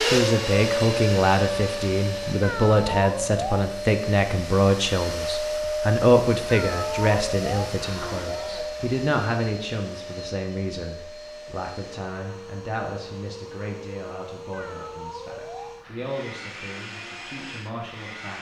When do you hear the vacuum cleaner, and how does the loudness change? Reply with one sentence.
The vacuum cleaner can be heard from 0.0 to 18.3 s, getting quieter.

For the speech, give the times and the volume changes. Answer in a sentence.
You can hear the speech from 0.0 to 18.3 s, getting quieter.